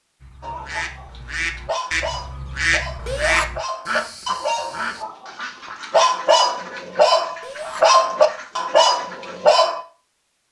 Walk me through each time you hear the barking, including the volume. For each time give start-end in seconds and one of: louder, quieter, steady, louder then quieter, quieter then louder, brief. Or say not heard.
0.4-9.8 louder.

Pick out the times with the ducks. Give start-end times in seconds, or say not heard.
0.2-9.7.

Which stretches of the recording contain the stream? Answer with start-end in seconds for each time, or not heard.
not heard.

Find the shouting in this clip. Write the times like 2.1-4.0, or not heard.
3.0-3.5, 7.4-7.8.